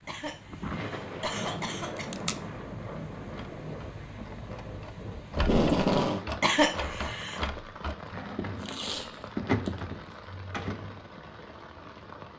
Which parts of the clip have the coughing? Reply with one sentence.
You can hear the coughing from 0.1 to 2.0 s and from 6.4 to 7.5 s.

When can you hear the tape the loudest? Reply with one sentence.
The loudest moment of the tape is at 6 seconds.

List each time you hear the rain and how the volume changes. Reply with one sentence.
You can hear the rain from 0.0 to 12.3 s, getting quieter.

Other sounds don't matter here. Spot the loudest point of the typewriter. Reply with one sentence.
The volume of the typewriter peaks at 10 seconds.